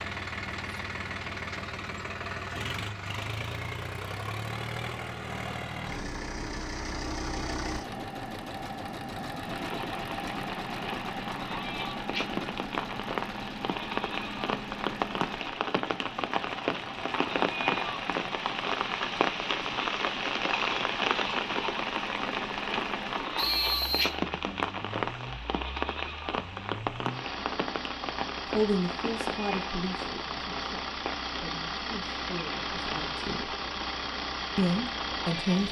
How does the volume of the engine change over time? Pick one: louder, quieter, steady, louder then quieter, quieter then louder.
quieter then louder.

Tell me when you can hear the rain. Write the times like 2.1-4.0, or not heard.
9.3-35.6.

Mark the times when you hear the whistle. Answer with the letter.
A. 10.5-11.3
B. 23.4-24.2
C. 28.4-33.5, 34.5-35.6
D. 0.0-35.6
B.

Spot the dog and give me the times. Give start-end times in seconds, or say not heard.
not heard.